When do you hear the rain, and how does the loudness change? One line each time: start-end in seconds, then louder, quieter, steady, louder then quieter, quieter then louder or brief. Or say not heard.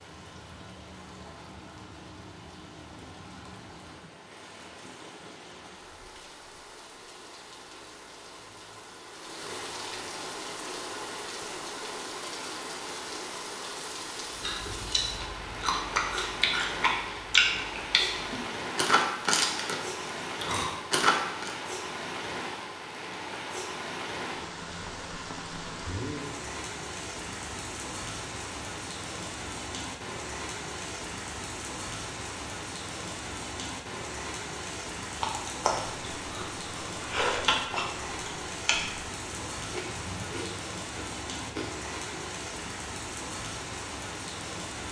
0.0-44.8 louder.